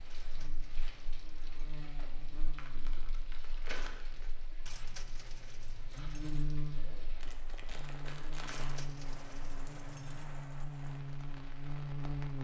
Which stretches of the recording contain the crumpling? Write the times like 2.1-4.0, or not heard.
2.5-4.3, 7.2-8.8.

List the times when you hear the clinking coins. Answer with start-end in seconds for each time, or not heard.
0.1-1.8, 4.7-6.5, 8.4-10.3.